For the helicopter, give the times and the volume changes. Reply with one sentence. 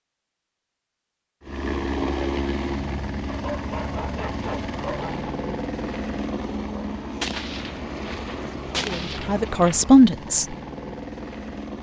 You can hear the helicopter from 1.4 to 11.7 s, getting quieter.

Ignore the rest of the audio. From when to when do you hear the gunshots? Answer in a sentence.
The gunshots can be heard from 7.2 to 9.8 s.